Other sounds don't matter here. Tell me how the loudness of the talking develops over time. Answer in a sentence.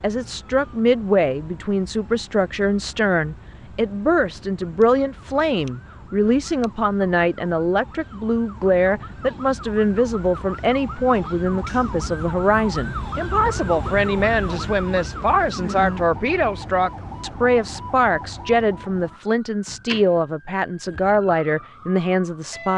The loudness of the talking stays about the same.